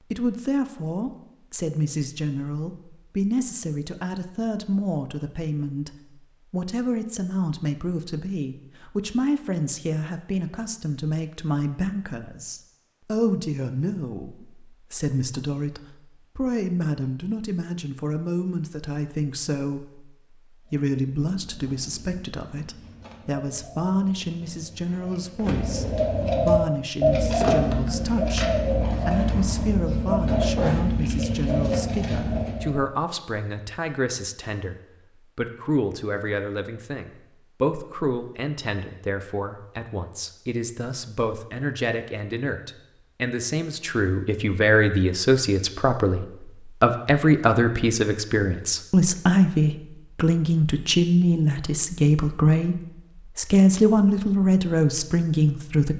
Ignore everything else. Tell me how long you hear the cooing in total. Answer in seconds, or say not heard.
12 s.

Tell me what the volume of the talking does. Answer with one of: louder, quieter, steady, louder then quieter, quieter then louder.
louder.